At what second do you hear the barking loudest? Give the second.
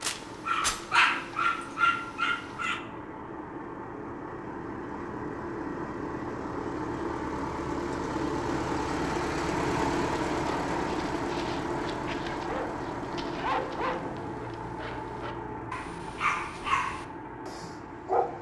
1 s.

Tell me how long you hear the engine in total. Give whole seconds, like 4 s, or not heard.
18 s.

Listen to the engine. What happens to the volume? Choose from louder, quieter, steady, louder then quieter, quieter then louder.
louder then quieter.